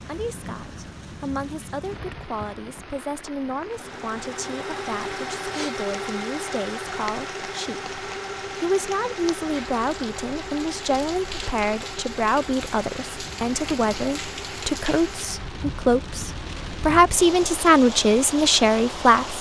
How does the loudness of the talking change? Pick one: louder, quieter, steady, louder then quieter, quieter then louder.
louder.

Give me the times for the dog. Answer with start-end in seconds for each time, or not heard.
not heard.